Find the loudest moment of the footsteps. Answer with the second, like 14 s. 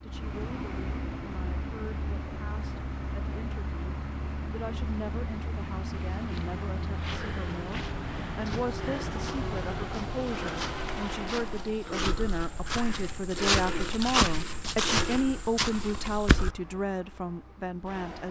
14 s.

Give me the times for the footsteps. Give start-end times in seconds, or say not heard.
6.2-16.6.